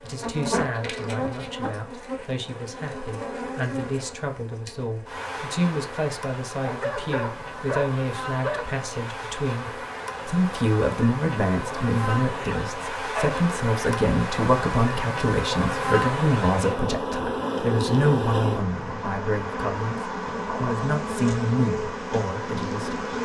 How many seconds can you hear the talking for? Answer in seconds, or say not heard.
23 s.